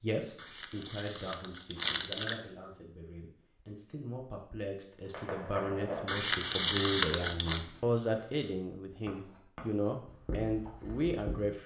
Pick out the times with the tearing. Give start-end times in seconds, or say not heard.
0.3-2.4, 6.0-7.6.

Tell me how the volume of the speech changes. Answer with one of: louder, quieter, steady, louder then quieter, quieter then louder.
louder.